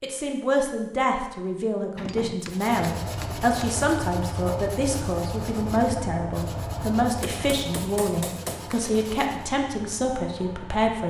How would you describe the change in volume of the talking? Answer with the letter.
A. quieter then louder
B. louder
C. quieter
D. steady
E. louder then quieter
D.